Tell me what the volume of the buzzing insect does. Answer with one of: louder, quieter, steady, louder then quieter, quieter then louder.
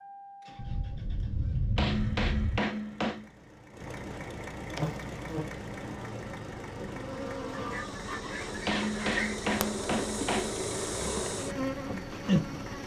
louder.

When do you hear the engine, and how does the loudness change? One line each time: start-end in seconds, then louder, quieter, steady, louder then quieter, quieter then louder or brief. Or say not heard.
0.0-12.8 louder.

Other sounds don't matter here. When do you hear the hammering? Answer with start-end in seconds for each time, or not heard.
1.8-3.2, 8.7-10.6.